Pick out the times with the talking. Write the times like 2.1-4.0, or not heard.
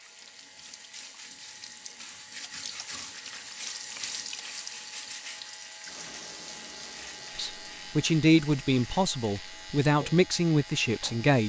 7.3-11.4.